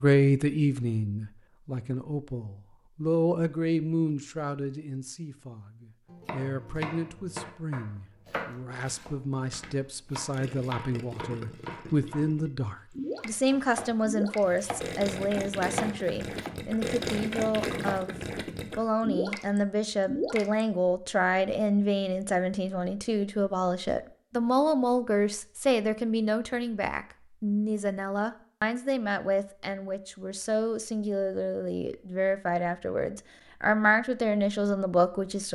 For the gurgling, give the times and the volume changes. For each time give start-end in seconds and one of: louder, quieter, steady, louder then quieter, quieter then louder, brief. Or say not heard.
10.3-20.6 louder.